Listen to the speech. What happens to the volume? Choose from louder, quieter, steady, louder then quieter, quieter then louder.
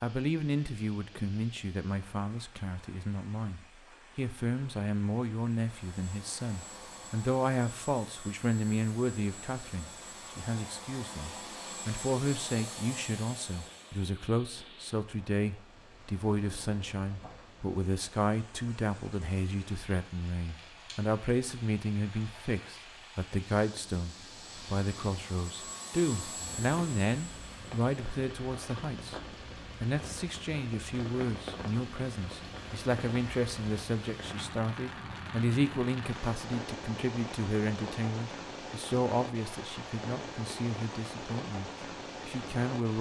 steady.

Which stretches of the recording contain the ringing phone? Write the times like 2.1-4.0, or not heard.
not heard.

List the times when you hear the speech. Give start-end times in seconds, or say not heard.
0.0-29.2, 29.8-42.9.